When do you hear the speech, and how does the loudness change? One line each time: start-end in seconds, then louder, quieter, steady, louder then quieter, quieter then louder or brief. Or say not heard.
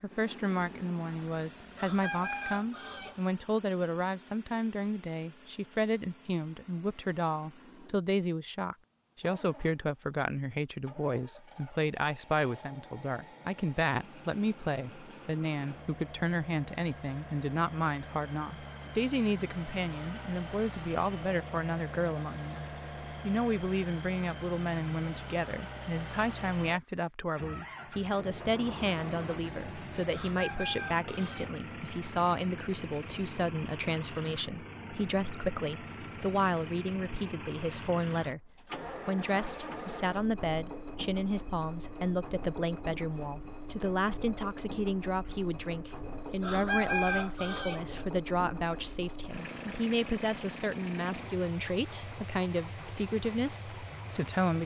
0.0-54.6 steady.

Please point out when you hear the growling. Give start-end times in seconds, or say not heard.
not heard.